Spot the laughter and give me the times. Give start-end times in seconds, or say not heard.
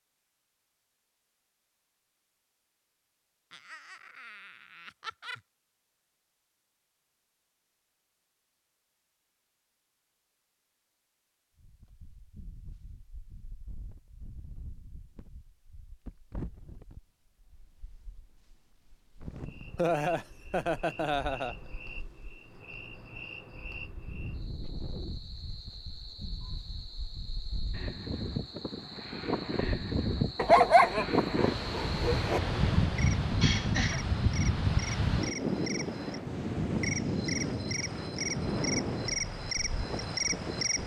3.5-5.4, 19.8-21.6, 33.4-34.0.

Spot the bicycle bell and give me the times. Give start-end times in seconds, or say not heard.
not heard.